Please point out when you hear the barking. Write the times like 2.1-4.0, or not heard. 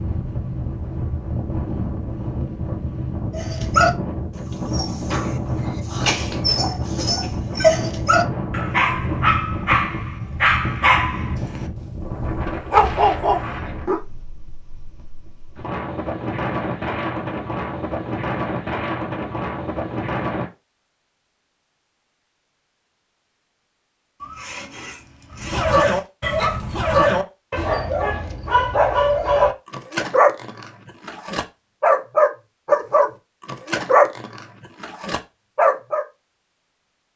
3.3-14.0, 25.4-36.0.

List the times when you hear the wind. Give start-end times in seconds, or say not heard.
0.0-20.5.